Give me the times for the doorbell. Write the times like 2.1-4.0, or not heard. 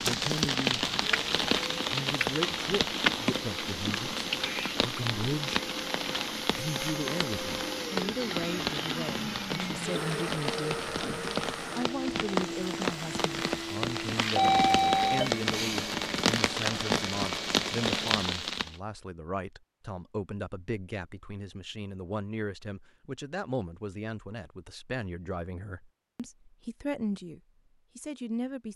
14.3-15.3.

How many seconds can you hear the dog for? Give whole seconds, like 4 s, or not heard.
not heard.